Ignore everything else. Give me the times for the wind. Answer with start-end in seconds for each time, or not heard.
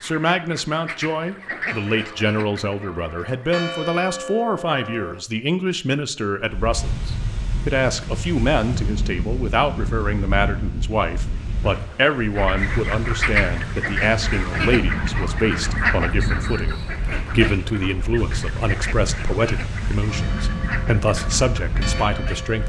6.3-22.6.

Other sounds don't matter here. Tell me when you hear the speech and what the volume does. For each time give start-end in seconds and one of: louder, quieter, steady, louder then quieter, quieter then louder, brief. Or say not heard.
0.0-22.6 steady.